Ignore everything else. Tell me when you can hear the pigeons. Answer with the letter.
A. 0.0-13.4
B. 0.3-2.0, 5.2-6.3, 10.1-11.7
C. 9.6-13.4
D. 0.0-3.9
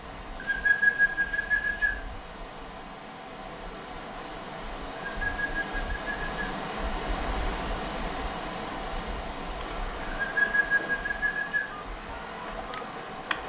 B.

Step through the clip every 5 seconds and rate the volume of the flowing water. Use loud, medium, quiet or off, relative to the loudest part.
medium, loud, medium.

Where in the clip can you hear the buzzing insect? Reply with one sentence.
The buzzing insect can be heard from 9.6 to 13.4 s.